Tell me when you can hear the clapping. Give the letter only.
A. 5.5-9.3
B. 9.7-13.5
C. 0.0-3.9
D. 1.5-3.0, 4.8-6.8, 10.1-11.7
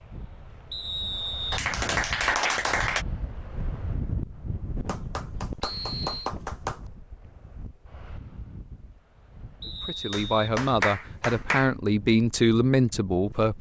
D.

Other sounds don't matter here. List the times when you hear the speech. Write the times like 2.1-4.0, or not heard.
9.7-13.5.